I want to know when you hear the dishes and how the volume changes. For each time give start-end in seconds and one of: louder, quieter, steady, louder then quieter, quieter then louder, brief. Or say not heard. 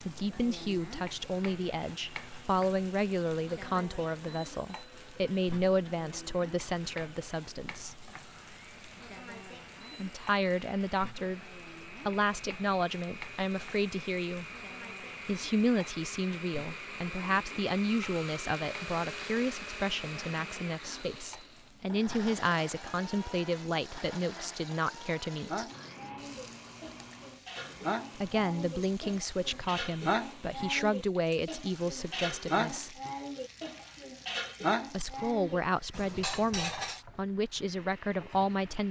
25.3-37.0 louder.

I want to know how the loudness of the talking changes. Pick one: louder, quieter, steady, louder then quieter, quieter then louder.
steady.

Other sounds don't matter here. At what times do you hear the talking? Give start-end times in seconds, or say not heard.
0.0-8.1, 9.9-14.4, 15.2-25.6, 28.1-33.0, 34.9-38.8.